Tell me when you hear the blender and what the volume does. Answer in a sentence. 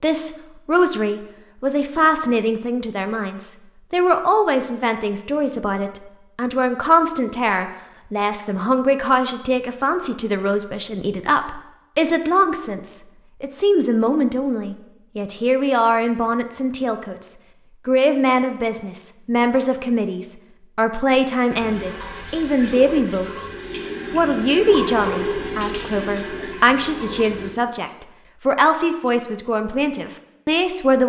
The blender can't be heard in this clip.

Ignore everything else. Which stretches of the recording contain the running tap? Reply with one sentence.
The running tap can be heard from 21.5 to 27.5 s.